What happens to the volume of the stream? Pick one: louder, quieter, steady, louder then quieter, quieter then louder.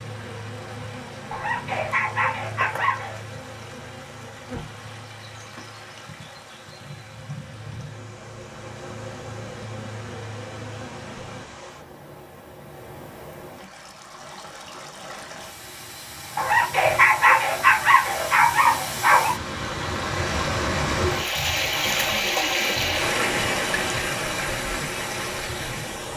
louder.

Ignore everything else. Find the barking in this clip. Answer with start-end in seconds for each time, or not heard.
1.3-3.2, 16.4-19.4.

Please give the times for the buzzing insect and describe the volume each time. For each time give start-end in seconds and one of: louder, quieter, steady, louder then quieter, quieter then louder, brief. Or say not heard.
0.0-11.4 quieter then louder.